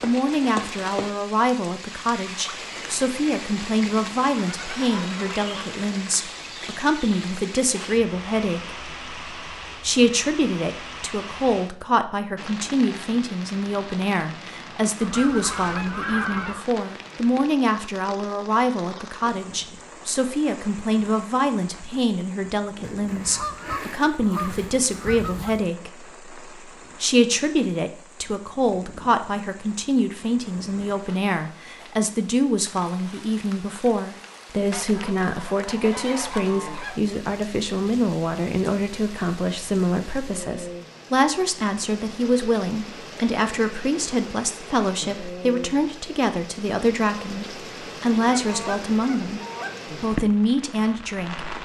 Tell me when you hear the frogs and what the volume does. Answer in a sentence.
You can't hear the frogs here.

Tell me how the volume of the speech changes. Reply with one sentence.
The volume of the speech stays about the same.